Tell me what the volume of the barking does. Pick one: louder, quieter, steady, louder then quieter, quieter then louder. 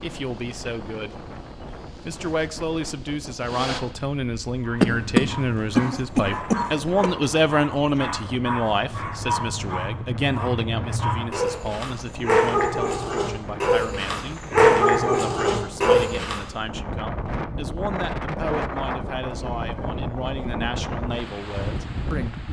louder.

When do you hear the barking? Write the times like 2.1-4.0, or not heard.
4.5-16.4.